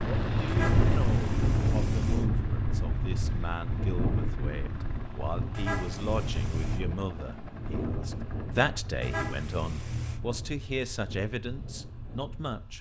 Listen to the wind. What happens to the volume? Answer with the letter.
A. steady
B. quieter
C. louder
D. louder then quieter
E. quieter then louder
B.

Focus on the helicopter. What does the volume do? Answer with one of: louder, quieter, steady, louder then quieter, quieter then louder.
quieter.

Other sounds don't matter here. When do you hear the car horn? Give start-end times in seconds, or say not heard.
0.5-2.3, 5.5-6.8, 9.0-10.2.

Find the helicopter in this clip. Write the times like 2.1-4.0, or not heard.
0.0-9.0.